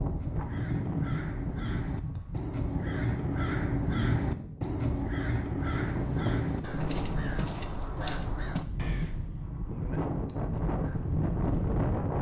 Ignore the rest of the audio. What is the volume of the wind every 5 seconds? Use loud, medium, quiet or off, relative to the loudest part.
medium, medium, loud.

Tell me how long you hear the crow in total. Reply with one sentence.
You can hear the crow for 9 seconds altogether.